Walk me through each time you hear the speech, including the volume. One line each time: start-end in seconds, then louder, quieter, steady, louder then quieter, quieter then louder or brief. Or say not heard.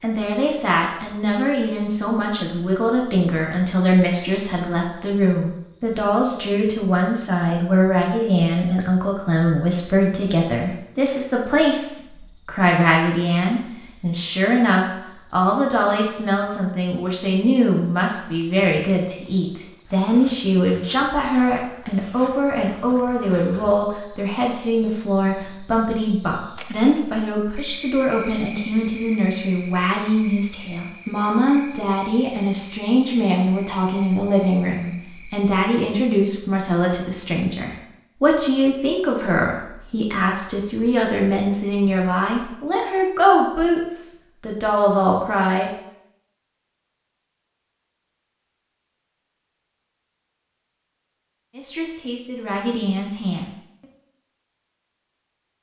0.0-45.7 steady
51.5-53.5 brief.